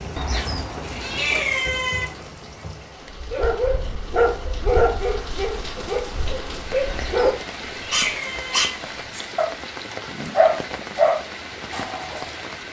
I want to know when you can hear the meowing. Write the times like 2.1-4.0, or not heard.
0.1-2.0, 6.8-8.7.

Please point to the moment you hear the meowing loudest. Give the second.
1 s.